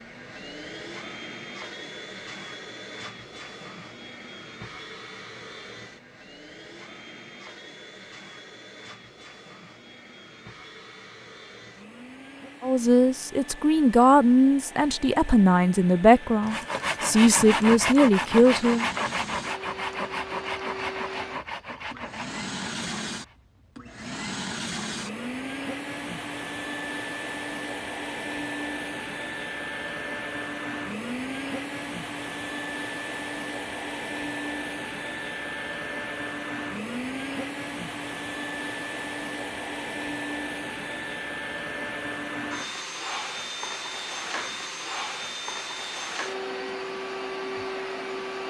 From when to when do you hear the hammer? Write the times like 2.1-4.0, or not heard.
not heard.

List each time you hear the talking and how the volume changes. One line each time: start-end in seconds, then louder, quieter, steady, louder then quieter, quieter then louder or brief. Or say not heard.
12.6-18.9 steady.